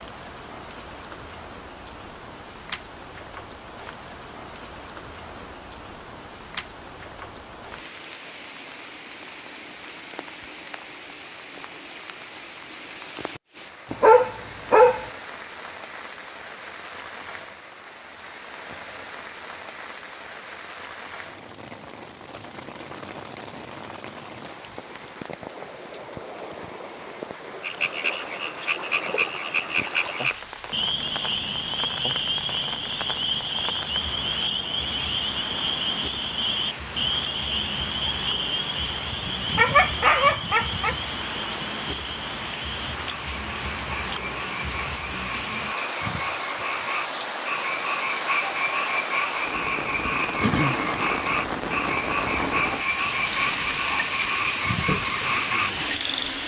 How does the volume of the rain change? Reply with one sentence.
The loudness of the rain goes up.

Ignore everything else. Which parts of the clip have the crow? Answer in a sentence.
You can't hear the crow here.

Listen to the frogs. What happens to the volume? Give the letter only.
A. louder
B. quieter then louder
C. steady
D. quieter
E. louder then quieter
B.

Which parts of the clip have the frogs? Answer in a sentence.
You can hear the frogs from 27.6 to 56.4 s.